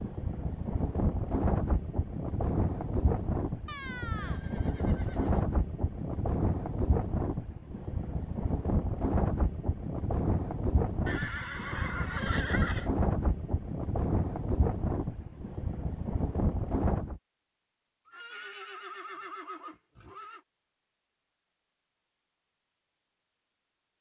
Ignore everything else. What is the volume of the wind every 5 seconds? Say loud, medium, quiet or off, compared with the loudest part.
loud, loud, loud, loud, off.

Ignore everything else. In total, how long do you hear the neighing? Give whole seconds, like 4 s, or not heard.
6 s.